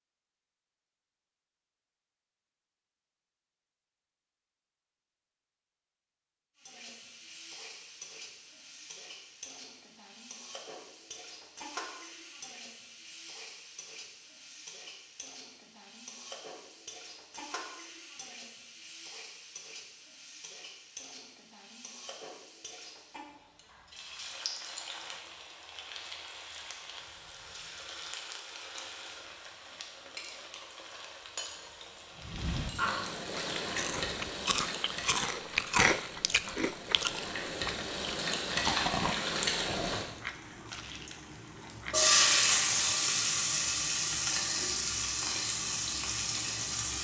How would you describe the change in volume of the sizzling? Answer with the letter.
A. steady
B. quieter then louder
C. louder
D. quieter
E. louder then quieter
C.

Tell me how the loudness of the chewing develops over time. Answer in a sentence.
The volume of the chewing goes up, then down.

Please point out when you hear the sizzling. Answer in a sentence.
The sizzling can be heard from 6.5 to 47.0 s.